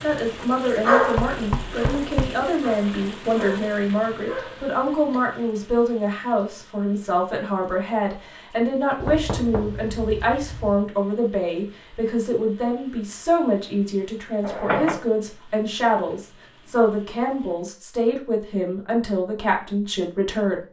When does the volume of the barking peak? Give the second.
1 s.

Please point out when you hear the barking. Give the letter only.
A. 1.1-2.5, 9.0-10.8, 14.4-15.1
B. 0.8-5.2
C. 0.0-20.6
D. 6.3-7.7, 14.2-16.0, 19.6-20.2
B.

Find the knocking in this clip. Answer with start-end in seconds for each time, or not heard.
1.1-2.5, 9.0-10.8, 14.4-15.1.